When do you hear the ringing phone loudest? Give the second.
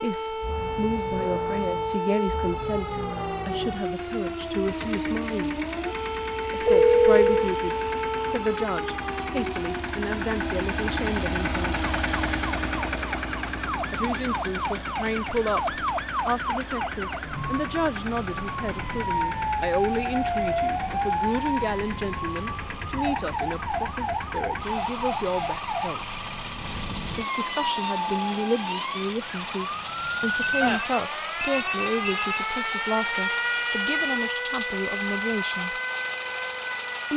7 s.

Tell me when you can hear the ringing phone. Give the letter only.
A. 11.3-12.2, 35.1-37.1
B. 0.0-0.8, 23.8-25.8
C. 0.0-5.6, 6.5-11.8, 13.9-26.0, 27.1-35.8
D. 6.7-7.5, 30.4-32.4
D.